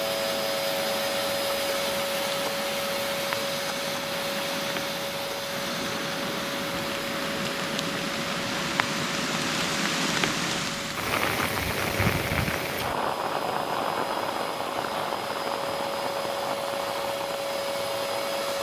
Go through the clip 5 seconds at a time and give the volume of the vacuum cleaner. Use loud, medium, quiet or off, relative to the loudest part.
loud, medium, medium, loud.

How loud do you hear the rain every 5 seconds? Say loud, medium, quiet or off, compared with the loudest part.
medium, loud, loud, medium.